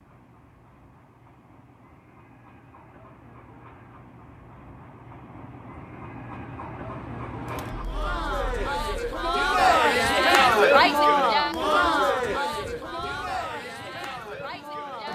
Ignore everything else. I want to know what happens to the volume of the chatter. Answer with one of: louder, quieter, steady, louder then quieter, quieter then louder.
louder then quieter.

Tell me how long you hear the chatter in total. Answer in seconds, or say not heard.
8 s.